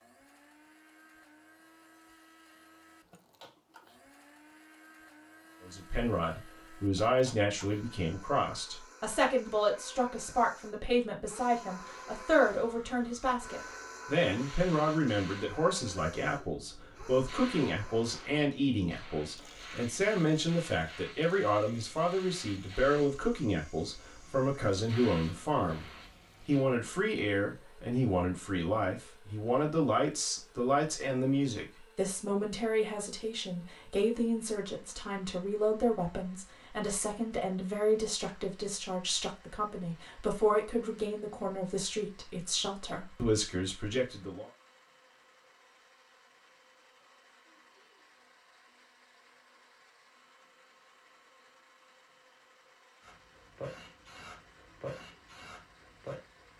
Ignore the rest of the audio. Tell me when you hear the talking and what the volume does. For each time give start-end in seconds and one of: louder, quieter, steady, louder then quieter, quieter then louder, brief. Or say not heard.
5.7-44.5 steady.